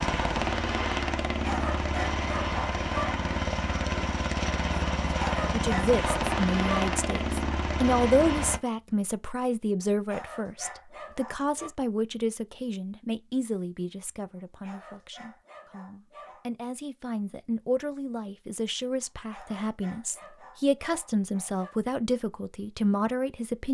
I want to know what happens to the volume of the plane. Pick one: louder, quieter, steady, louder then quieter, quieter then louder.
steady.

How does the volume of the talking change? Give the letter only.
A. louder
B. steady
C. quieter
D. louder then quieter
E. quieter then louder
E.